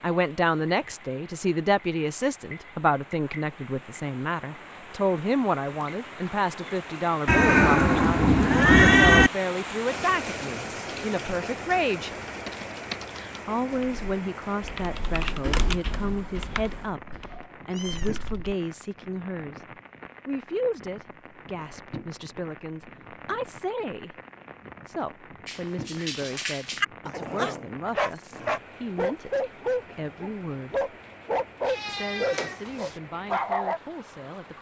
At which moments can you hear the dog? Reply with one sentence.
The dog can be heard from 25.4 to 33.8 s.